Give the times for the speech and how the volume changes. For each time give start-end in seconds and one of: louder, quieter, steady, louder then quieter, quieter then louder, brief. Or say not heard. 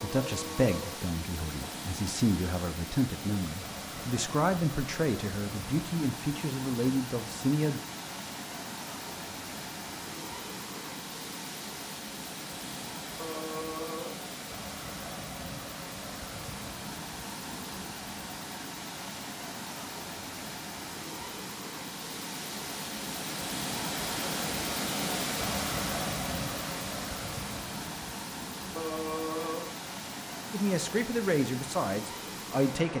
0.0-7.8 steady
30.5-32.9 brief.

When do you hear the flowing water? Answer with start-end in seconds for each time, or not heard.
0.0-32.9.